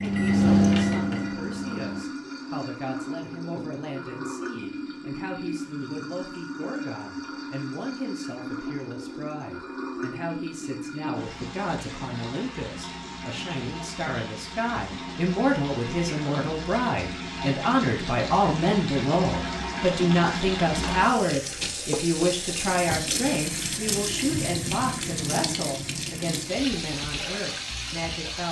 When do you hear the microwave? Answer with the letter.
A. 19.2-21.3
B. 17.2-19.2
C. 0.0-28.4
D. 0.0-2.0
D.